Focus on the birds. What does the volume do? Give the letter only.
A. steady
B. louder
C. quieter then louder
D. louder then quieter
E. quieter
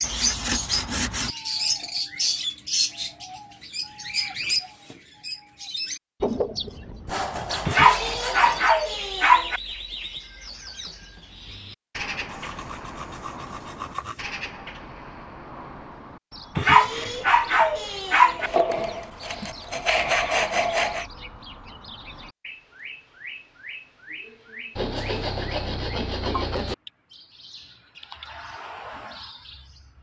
E.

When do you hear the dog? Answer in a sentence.
The dog can be heard from 7.7 to 9.6 s and from 16.6 to 18.5 s.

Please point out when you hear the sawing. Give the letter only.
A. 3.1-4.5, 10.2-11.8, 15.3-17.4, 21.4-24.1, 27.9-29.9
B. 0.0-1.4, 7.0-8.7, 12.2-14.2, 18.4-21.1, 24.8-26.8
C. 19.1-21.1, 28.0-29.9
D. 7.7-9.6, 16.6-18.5
B.